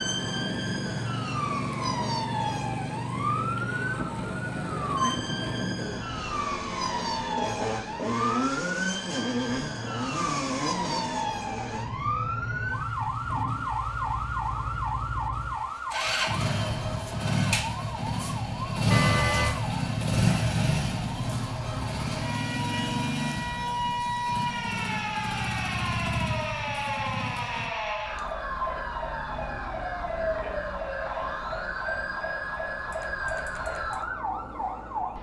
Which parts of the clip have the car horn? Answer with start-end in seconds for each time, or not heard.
18.9-19.6.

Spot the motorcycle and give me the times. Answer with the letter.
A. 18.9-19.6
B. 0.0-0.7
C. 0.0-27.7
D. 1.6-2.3
C.